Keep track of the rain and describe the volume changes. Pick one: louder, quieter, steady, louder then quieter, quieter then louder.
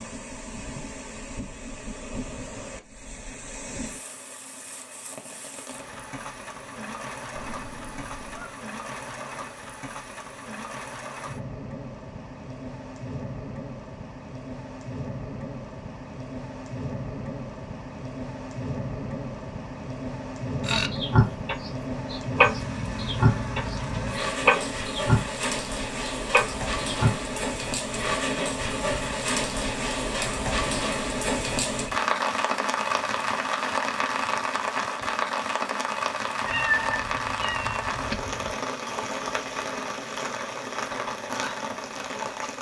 louder.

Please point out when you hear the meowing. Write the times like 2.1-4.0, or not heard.
7.3-8.6, 22.9-24.9, 36.5-38.5.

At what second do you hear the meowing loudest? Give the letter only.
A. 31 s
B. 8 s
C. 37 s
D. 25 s
C.